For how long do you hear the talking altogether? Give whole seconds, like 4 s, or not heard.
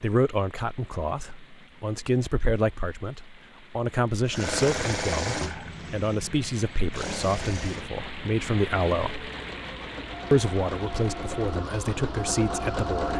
12 s.